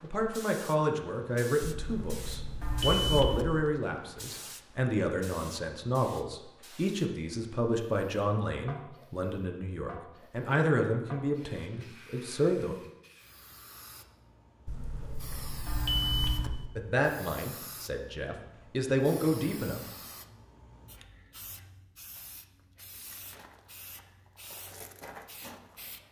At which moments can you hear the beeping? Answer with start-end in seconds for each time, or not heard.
1.6-3.6, 14.7-16.7.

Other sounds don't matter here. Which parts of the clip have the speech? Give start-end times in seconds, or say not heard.
0.0-12.8, 16.8-19.9.